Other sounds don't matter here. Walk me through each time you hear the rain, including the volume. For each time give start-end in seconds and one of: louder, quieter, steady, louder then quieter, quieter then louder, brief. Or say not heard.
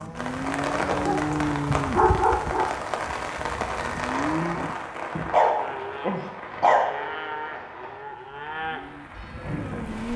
0.0-10.1 quieter.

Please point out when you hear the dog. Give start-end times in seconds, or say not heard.
1.1-2.8, 5.3-7.0.